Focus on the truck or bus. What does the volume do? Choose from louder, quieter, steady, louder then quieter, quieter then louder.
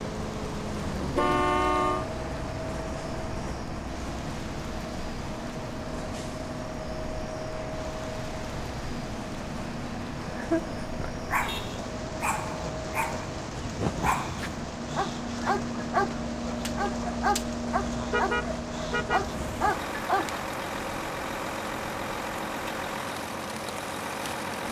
steady.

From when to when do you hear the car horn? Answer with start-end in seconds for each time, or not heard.
1.1-2.0, 11.4-11.8, 18.1-19.3.